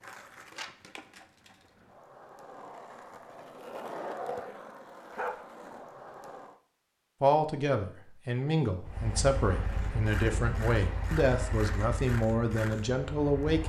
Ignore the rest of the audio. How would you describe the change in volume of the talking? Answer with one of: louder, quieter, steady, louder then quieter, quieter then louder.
steady.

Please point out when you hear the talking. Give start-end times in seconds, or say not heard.
7.2-13.6.